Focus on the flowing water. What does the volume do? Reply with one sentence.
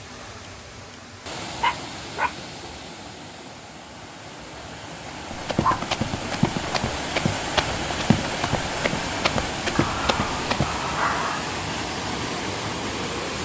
The volume of the flowing water goes up.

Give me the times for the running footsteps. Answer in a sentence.
You can hear the running footsteps from 5.3 to 10.7 s.